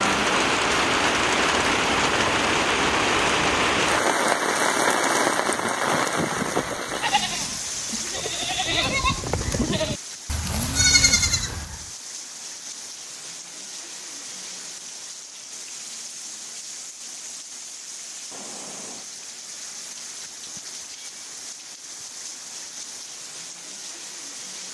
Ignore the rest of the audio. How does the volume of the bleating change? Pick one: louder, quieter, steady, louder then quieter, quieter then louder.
louder.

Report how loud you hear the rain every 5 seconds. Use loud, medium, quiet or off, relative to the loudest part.
loud, medium, quiet, quiet, quiet.